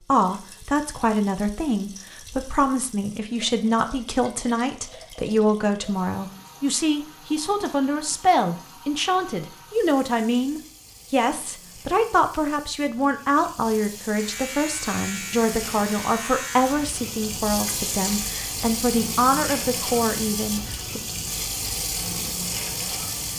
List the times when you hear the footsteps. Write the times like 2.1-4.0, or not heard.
not heard.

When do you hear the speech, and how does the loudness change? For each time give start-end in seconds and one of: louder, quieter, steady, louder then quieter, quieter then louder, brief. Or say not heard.
0.1-21.0 steady.